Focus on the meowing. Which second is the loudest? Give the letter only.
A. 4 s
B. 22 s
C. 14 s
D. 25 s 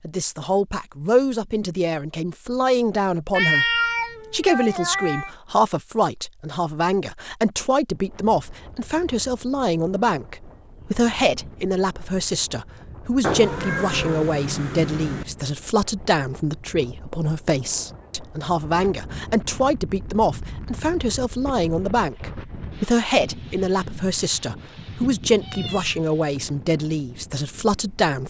A.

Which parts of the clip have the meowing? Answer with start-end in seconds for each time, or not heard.
3.3-5.3, 13.2-15.2, 24.2-26.1.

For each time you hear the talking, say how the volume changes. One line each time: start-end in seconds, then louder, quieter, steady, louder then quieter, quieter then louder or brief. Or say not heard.
0.0-28.2 steady.